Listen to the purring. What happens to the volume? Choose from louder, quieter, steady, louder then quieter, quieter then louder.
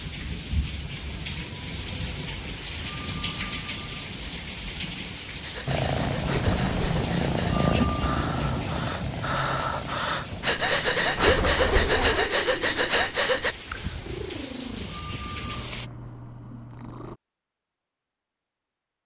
quieter.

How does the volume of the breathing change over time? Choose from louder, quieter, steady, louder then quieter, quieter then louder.
louder.